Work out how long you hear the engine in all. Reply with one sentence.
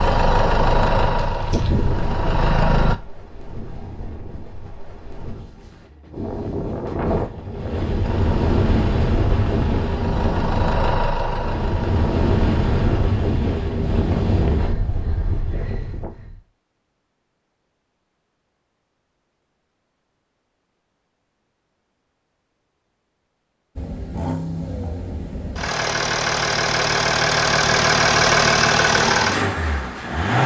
The engine can be heard for 15 seconds in total.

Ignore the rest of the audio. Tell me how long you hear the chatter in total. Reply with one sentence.
You can't hear the chatter here.